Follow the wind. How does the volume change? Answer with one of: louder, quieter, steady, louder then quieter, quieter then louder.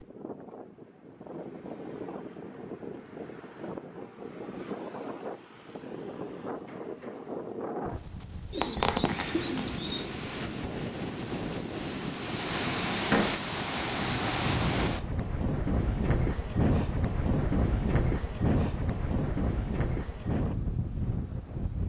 louder.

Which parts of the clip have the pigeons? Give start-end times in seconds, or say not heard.
8.5-10.1.